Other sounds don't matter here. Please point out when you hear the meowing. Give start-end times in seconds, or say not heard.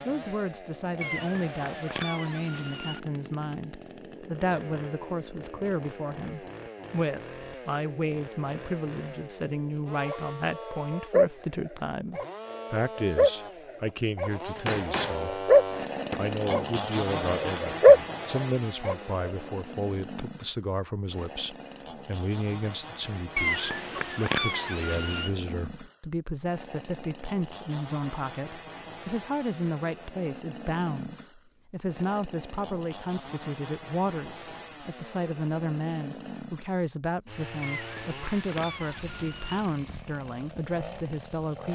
1.0-3.0, 23.4-25.4, 37.6-39.6.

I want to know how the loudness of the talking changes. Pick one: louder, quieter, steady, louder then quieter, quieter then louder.
steady.